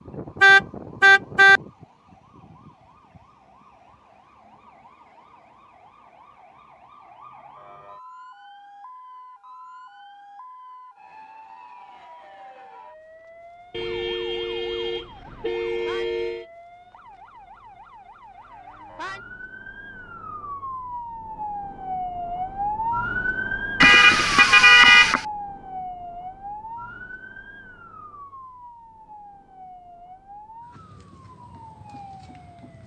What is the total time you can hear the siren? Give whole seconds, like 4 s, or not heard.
33 s.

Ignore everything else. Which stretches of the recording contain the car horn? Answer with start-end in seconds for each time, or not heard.
0.4-1.6, 13.7-16.4, 23.8-25.2.